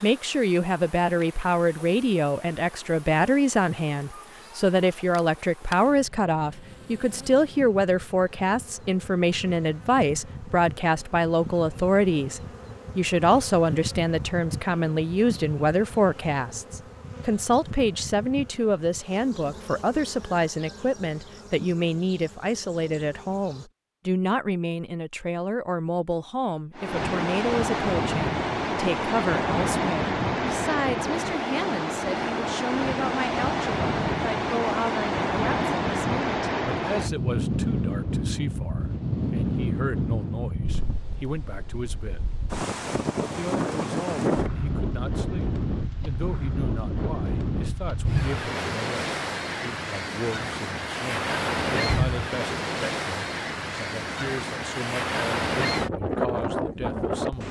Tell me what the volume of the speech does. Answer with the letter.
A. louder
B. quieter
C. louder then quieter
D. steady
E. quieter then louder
B.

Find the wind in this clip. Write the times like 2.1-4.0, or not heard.
26.8-57.4.